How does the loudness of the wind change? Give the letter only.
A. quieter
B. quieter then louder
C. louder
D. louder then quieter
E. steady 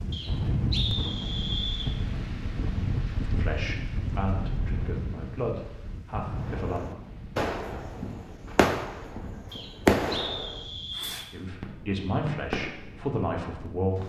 A.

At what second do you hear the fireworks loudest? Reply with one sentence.
The volume of the fireworks peaks at 10 seconds.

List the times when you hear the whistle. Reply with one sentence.
The whistle can be heard from 0.1 to 1.9 s and from 9.5 to 11.2 s.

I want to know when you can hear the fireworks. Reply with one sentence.
The fireworks can be heard from 6.4 to 12.9 s.